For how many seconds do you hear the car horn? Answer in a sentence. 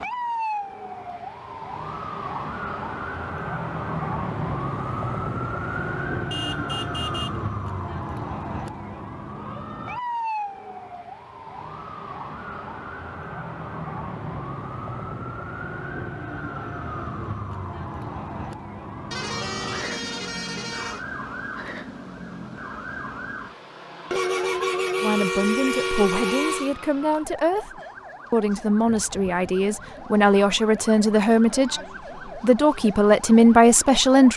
You can hear the car horn for 6 seconds altogether.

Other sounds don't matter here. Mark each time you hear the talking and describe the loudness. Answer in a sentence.
You can hear the talking briefly from 25.0 to 27.7 s; and from 28.3 to 34.3 s, getting louder.